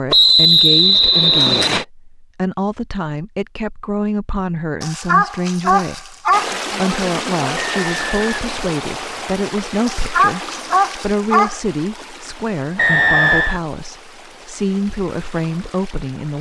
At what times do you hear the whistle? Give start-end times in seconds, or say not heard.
0.1-1.9, 7.5-9.3, 12.8-13.6.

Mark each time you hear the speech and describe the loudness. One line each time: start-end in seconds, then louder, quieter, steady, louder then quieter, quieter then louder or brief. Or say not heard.
0.0-16.3 steady.